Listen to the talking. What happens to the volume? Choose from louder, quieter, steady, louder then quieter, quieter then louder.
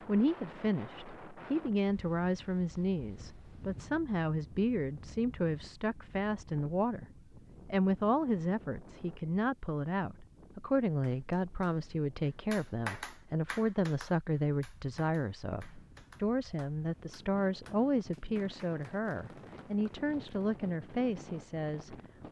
steady.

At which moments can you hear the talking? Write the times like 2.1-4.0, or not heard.
0.1-21.9.